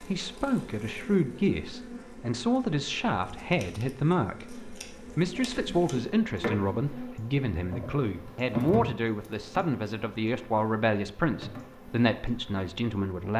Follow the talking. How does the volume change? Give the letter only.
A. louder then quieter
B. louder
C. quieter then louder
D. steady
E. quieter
D.